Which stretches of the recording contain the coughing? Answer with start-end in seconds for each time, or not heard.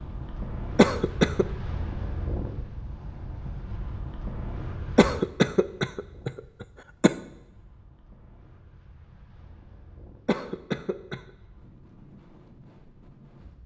0.8-1.4, 5.0-7.2, 10.2-11.2.